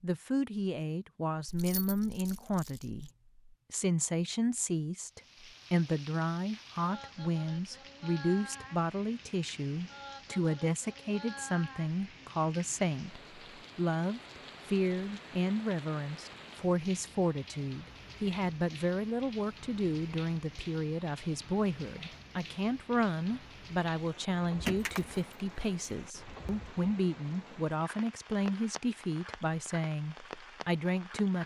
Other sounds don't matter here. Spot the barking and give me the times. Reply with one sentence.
The barking can't be heard in this clip.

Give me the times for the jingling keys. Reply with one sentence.
You can hear the jingling keys from 1.4 to 3.1 s and from 24.6 to 25.9 s.